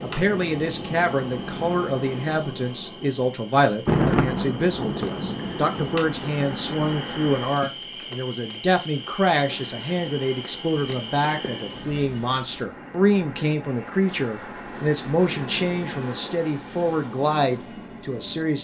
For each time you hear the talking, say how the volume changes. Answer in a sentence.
The talking can be heard from 0.0 to 18.6 s, at a steady volume.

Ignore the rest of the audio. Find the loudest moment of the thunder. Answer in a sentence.
The loudest moment of the thunder is at 4 seconds.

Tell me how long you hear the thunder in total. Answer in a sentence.
You can hear the thunder for 3 seconds altogether.